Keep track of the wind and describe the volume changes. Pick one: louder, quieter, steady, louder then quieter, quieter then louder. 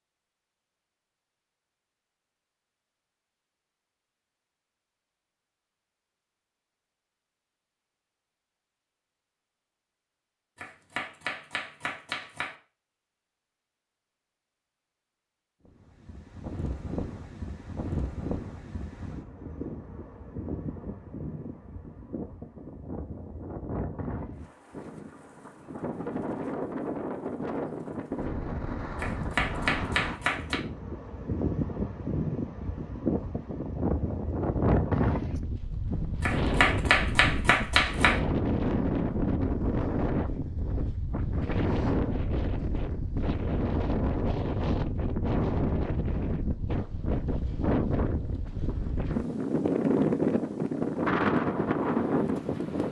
louder.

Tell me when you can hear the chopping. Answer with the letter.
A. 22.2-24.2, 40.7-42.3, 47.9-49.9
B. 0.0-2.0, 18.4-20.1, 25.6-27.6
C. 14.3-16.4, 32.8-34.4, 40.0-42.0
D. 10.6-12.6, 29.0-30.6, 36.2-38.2
D.